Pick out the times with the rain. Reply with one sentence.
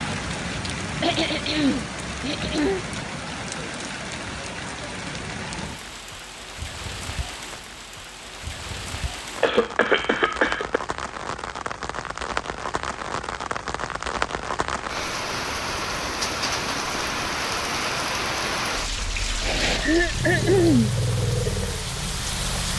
The rain can be heard from 0.0 to 22.7 s.